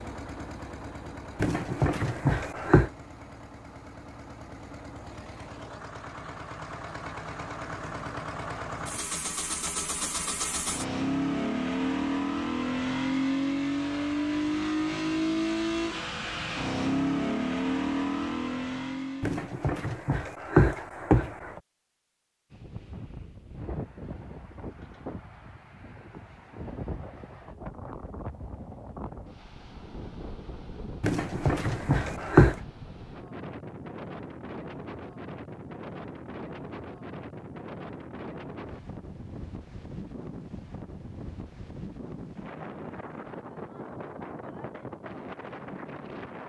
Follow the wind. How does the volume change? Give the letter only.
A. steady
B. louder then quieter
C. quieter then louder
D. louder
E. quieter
A.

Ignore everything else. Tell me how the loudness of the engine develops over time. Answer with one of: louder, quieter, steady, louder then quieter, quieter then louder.
louder.